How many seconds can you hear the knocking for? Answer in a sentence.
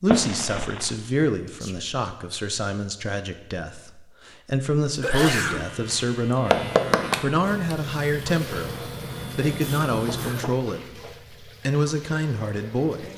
The knocking can be heard for 2 seconds in total.